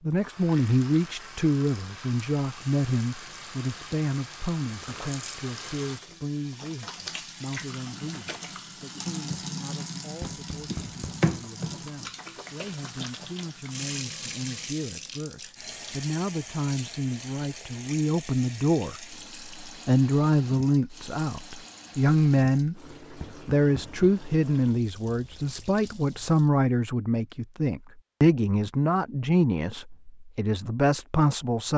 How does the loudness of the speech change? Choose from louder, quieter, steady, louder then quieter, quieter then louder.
quieter then louder.